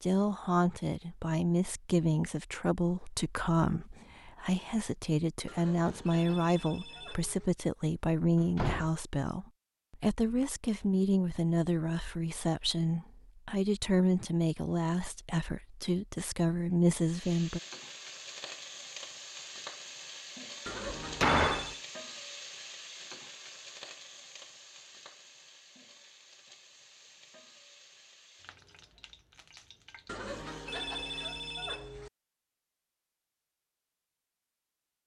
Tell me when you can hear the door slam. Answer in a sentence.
The door slam can be heard from 8.2 to 8.9 s and from 21.0 to 21.8 s.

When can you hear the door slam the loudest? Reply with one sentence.
The loudest moment of the door slam is at 21 seconds.